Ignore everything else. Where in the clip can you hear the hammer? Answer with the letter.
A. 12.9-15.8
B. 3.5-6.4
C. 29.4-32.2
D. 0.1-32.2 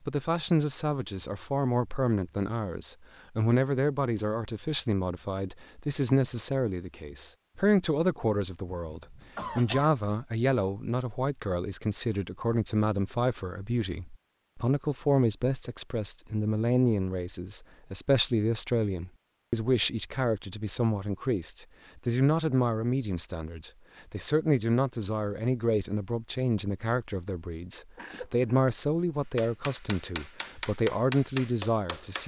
C.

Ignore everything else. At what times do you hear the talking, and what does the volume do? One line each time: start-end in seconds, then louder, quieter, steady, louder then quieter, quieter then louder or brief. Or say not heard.
0.1-32.2 steady.